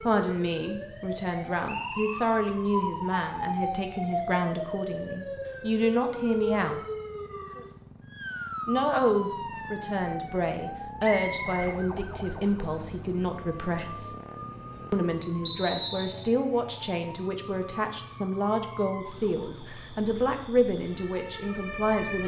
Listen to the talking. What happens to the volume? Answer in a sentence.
The loudness of the talking stays about the same.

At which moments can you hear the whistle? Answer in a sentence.
You can hear the whistle from 1.6 to 2.3 s, from 11.0 to 11.8 s and from 15.4 to 16.3 s.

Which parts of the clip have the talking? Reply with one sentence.
The talking can be heard from 0.0 to 6.8 s, from 8.7 to 14.2 s and from 14.9 to 22.2 s.